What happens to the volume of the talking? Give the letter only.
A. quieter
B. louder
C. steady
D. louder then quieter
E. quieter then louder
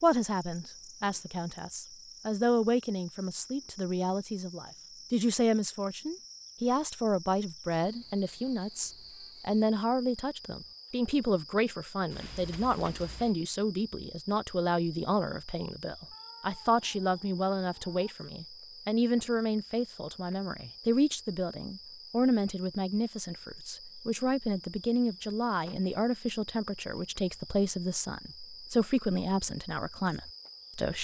C.